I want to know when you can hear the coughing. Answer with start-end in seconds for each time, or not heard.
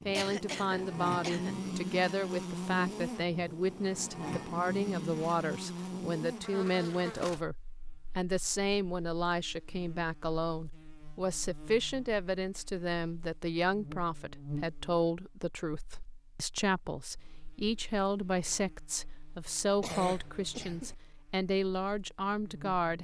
0.1-1.6, 19.8-20.9.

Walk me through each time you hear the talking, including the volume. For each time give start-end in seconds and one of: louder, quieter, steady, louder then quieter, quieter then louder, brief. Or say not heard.
0.1-7.5 steady
8.2-22.9 steady.